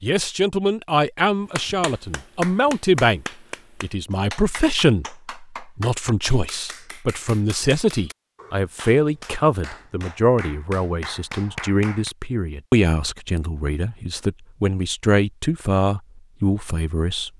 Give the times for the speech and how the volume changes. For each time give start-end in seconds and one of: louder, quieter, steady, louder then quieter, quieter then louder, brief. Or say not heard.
0.0-17.3 steady.